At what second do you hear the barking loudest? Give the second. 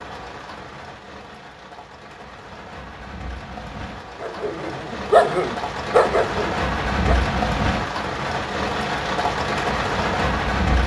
5 s.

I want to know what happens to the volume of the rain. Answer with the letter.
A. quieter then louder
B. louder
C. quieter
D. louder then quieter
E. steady
B.